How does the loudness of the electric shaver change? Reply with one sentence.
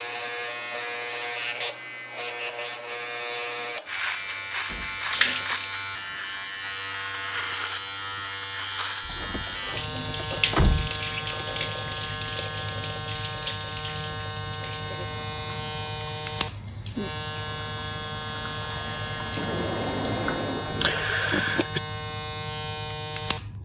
The loudness of the electric shaver stays about the same.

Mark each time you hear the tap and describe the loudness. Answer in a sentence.
You can hear the tap briefly from 4.1 to 5.8 s; and from 9.4 to 20.6 s, getting quieter then louder.